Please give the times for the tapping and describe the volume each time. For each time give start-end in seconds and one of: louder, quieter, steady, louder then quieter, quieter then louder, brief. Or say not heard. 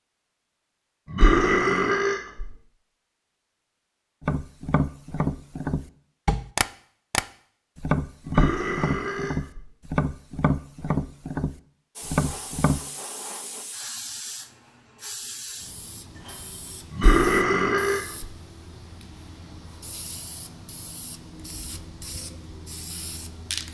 4.2-12.8 steady.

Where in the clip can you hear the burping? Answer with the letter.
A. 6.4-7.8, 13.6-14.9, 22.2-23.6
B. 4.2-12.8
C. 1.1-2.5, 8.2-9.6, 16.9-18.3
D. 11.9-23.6
C.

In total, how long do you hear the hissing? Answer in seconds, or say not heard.
12 s.